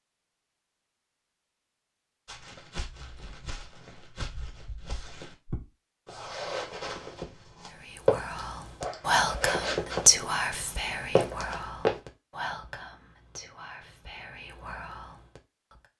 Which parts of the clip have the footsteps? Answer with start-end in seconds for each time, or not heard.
2.2-11.9.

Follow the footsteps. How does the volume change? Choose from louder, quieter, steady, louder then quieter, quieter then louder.
louder.